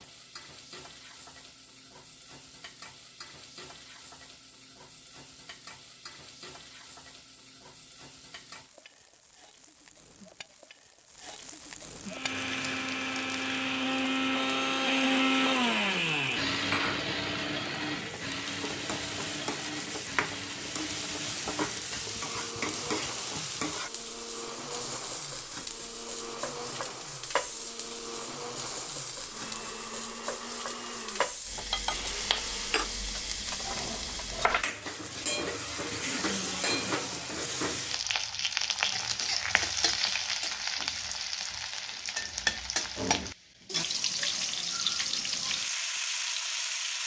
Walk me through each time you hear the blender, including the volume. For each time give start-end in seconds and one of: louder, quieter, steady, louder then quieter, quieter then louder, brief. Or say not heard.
12.1-32.9 quieter.